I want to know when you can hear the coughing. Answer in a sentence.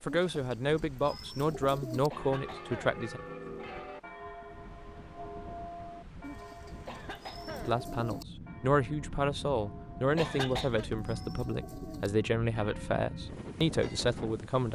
The coughing can be heard from 2.1 to 3.0 s, from 6.8 to 7.8 s and from 10.2 to 10.8 s.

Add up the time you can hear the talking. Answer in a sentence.
The talking can be heard for 10 seconds in total.